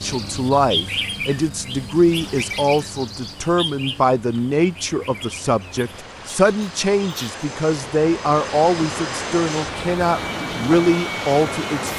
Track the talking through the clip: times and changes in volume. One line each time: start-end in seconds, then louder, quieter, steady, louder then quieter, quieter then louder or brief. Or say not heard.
0.0-11.9 steady.